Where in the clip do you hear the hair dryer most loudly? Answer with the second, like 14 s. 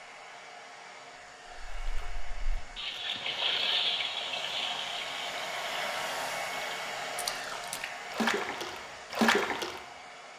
6 s.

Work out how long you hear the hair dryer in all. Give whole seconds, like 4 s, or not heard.
10 s.